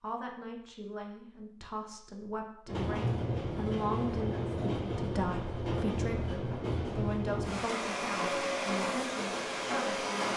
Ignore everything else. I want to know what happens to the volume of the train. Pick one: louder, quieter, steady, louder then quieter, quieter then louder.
steady.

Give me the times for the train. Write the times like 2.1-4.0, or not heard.
2.6-10.3.